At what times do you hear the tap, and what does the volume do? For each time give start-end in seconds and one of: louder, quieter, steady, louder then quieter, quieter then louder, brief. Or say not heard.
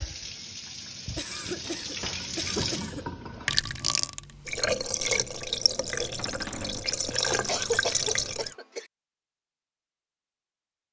0.0-8.6 louder.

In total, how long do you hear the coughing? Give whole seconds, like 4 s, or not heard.
4 s.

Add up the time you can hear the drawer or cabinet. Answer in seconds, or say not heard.
2 s.